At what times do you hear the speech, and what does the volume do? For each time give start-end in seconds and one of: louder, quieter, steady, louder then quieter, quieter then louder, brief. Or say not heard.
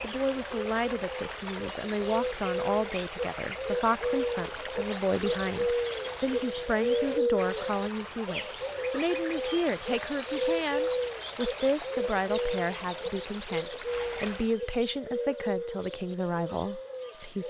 0.0-17.4 steady.